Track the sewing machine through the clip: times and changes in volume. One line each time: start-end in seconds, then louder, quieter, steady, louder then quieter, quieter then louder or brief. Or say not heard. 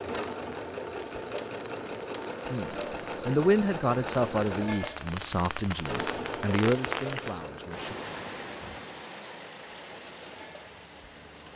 0.0-11.5 quieter.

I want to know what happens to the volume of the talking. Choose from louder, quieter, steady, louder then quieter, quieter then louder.
quieter.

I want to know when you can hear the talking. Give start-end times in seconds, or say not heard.
2.5-8.0.